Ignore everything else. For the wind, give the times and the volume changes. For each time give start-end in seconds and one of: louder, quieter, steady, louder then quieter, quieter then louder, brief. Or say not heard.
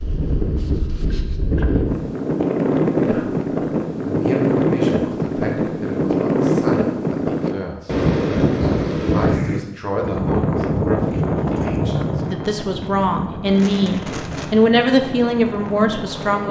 0.0-16.4 quieter.